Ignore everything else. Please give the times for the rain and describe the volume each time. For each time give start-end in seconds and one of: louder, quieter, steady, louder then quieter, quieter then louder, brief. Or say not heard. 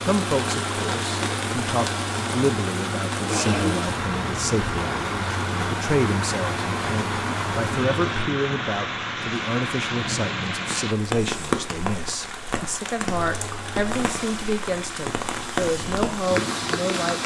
0.0-17.2 steady.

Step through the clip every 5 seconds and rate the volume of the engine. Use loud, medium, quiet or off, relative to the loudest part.
loud, loud, medium, loud.